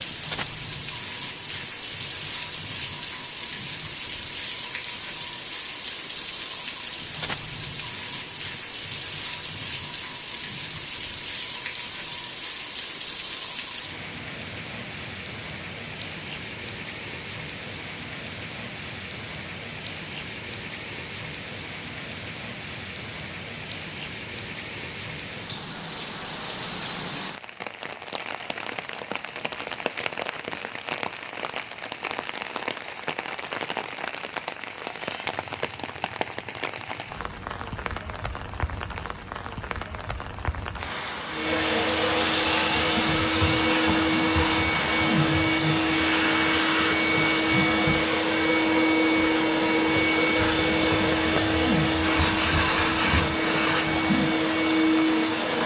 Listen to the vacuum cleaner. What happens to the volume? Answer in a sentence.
The loudness of the vacuum cleaner stays about the same.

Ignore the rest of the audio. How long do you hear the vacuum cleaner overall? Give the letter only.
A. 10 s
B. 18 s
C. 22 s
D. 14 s
D.